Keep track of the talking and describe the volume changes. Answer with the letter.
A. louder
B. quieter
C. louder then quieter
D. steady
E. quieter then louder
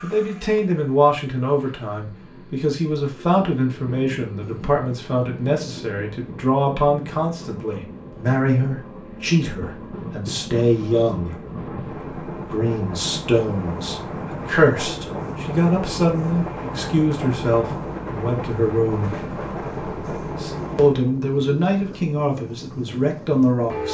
D.